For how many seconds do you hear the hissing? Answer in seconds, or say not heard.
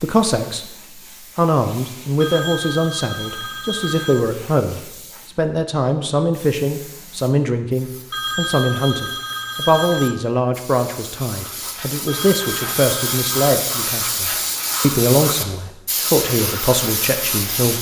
18 s.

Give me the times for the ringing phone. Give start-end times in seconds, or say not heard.
2.2-4.2, 8.1-10.2, 12.1-13.3.